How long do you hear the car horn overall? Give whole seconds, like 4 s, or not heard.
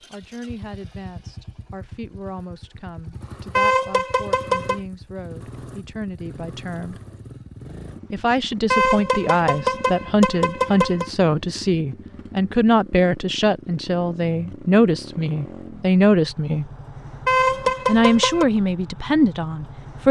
5 s.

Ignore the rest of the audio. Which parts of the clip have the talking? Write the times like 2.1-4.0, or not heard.
0.1-7.0, 8.1-16.6, 17.9-20.0.